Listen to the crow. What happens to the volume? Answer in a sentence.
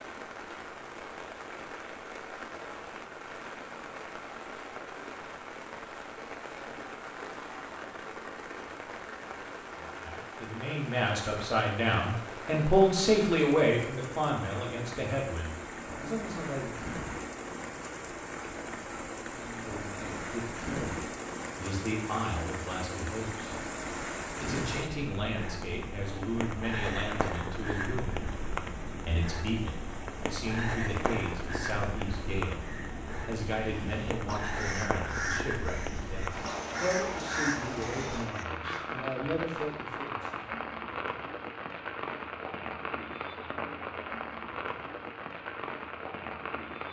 The loudness of the crow goes up.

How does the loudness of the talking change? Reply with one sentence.
The volume of the talking goes down.